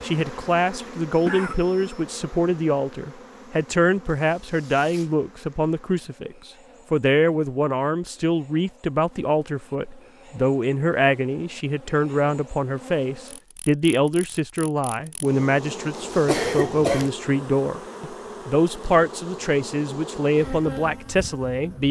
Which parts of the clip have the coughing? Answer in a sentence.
The coughing can be heard from 1.1 to 2.0 s and from 16.2 to 17.1 s.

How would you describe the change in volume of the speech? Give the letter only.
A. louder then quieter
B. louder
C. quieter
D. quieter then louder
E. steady
E.